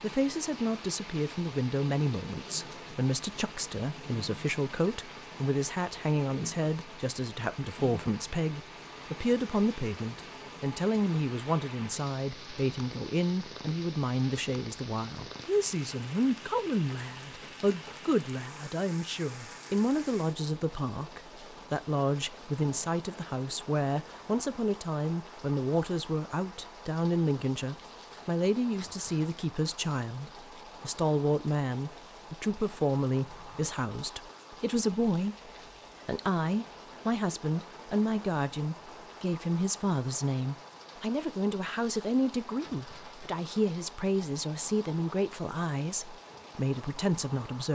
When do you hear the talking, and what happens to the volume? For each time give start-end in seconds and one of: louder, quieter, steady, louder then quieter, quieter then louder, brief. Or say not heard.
0.0-47.7 steady.